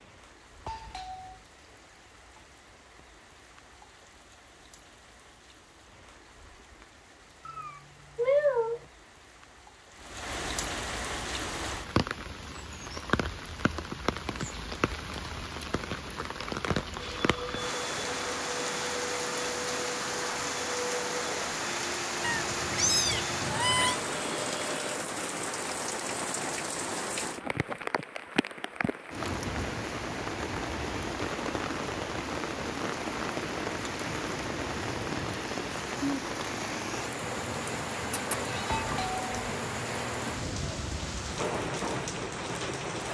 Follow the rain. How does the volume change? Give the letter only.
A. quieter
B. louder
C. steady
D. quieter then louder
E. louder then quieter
B.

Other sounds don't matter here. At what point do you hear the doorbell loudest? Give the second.
39 s.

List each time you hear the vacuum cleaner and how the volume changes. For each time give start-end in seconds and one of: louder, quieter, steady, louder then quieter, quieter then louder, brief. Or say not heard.
16.9-25.0 steady.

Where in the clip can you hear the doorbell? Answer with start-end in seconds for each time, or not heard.
0.7-1.4, 38.6-39.3.